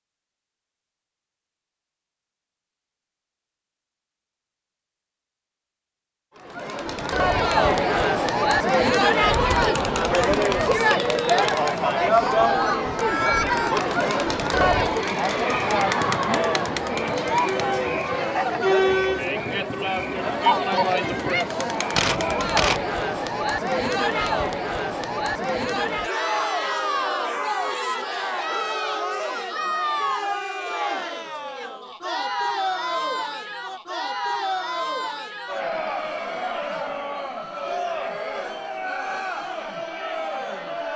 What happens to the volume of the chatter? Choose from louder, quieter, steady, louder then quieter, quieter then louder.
quieter.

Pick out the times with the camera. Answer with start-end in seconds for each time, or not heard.
21.9-22.9.